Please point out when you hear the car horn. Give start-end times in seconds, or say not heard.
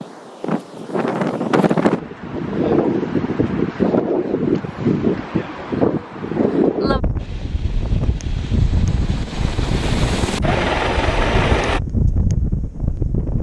not heard.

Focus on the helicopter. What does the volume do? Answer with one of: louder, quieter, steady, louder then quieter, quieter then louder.
louder.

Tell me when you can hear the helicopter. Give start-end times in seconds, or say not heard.
7.2-11.8.